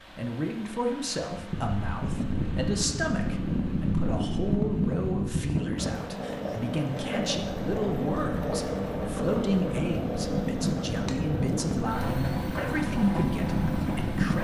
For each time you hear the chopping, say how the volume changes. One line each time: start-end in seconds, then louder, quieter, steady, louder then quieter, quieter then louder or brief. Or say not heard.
not heard.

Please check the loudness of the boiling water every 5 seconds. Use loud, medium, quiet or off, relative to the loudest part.
off, loud, loud.